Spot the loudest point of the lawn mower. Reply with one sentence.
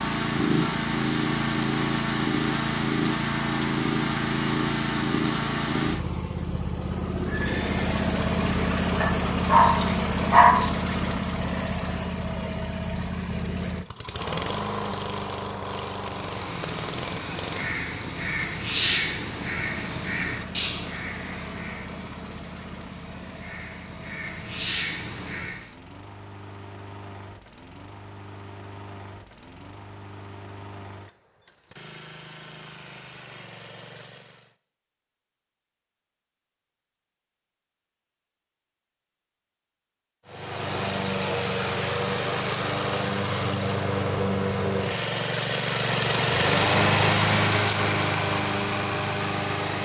The volume of the lawn mower peaks at 47 seconds.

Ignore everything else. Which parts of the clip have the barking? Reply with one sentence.
You can hear the barking from 9.0 to 10.7 s.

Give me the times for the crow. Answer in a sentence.
You can hear the crow from 16.1 to 25.7 s.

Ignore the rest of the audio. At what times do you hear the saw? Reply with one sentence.
You can't hear the saw here.